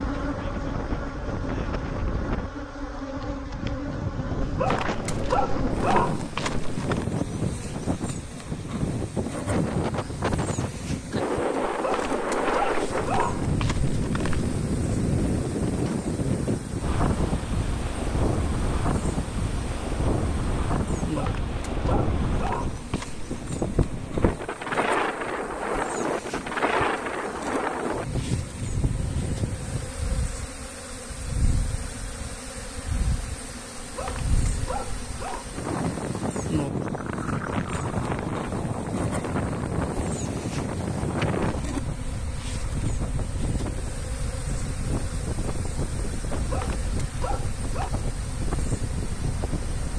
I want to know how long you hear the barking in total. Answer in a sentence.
The barking can be heard for 11 seconds in total.